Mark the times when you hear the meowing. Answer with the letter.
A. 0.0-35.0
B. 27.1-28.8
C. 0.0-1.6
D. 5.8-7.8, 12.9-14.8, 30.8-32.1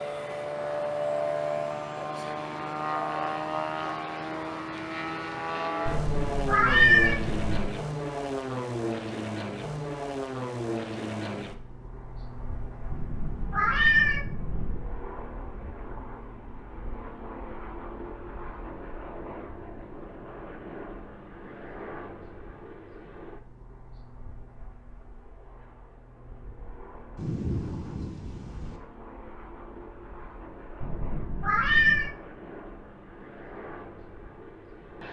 D.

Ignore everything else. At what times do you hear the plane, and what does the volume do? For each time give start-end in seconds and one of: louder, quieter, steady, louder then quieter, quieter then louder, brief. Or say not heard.
0.0-35.0 quieter.